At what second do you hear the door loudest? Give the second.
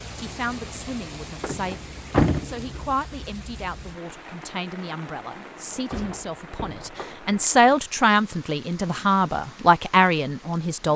2 s.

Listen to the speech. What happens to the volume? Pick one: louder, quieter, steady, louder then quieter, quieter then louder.
louder.